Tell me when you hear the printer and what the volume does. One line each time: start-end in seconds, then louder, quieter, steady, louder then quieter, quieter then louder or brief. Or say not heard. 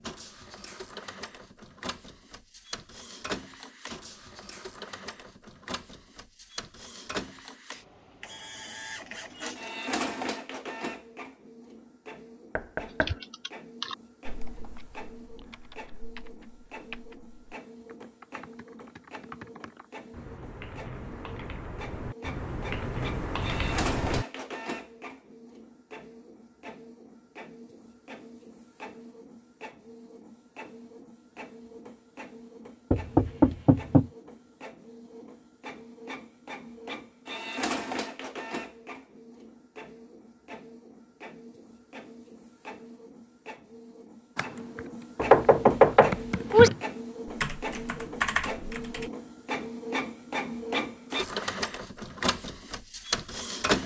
0.0-53.8 quieter then louder.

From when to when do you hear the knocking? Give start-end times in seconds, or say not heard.
12.6-13.2, 32.9-34.0, 45.1-46.7.